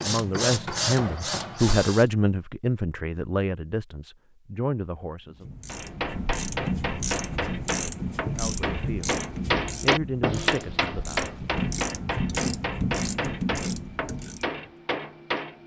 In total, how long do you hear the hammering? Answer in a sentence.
The hammering can be heard for 12 seconds in total.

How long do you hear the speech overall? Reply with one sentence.
The speech can be heard for 8 seconds in total.